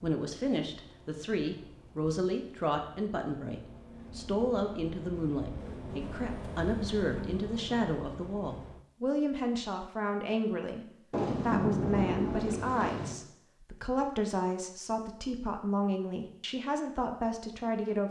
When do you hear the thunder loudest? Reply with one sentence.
The loudest moment of the thunder is at 12 seconds.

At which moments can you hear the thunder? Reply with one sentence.
The thunder can be heard from 11.1 to 13.2 s.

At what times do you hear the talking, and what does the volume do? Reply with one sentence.
You can hear the talking from 0.0 to 18.0 s, at a steady volume.